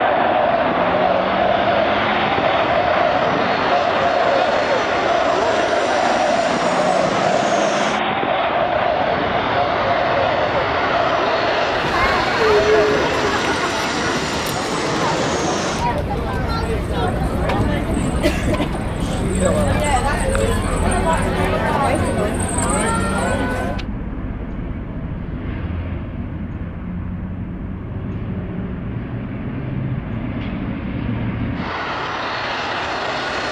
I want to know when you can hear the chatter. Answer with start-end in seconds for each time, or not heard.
0.0-23.9.